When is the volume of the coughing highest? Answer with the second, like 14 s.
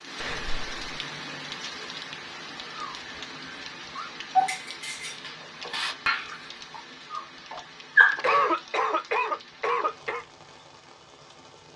8 s.